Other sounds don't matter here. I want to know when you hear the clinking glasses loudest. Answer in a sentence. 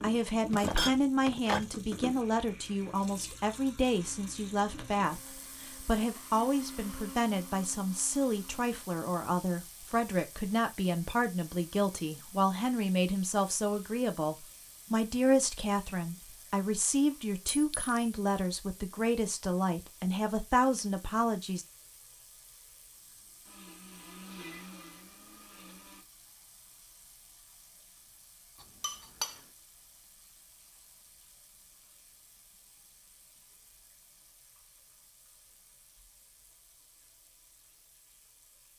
The volume of the clinking glasses peaks at 1 second.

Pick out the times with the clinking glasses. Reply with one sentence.
The clinking glasses can be heard from 0.5 to 1.7 s, from 17.5 to 17.9 s and from 28.6 to 29.4 s.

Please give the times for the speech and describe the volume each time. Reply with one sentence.
You can hear the speech from 0.0 to 21.6 s, at a steady volume.